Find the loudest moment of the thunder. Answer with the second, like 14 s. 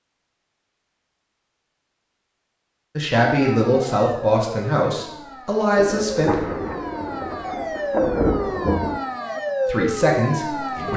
8 s.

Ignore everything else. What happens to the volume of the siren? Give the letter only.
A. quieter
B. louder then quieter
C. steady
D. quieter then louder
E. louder
D.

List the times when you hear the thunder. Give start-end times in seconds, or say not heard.
5.8-9.0.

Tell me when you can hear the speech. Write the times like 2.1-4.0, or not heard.
3.0-6.3, 9.7-10.9.